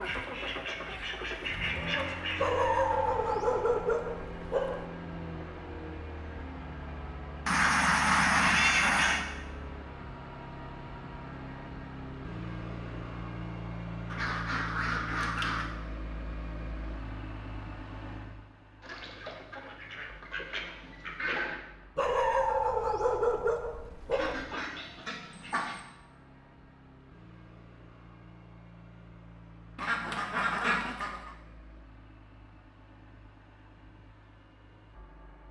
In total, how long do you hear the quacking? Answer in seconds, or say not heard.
12 s.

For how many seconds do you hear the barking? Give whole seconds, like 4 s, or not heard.
5 s.